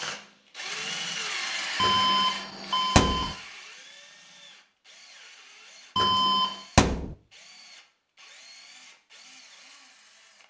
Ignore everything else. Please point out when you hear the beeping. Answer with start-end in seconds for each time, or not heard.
1.8-3.4, 6.0-6.6.